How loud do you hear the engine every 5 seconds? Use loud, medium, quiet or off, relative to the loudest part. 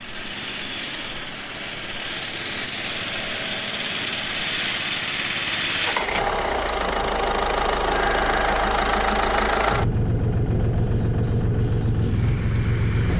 medium, loud, loud.